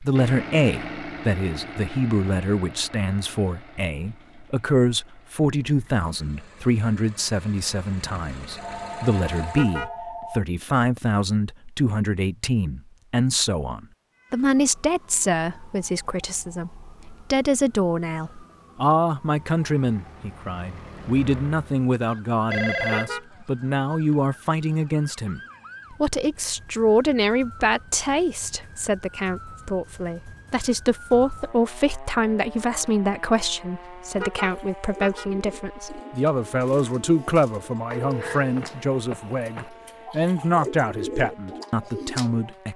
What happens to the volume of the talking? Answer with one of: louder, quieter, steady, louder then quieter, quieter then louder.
steady.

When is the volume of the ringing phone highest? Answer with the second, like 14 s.
23 s.